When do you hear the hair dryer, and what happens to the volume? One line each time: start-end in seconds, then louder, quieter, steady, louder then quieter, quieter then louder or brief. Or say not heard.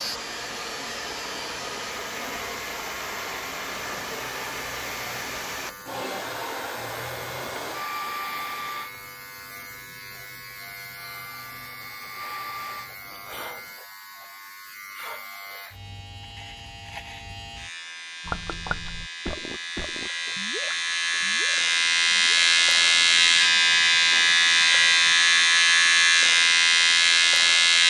0.0-8.9 steady
10.9-12.9 brief.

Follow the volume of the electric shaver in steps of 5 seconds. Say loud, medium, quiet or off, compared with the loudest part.
quiet, quiet, quiet, quiet, loud, loud.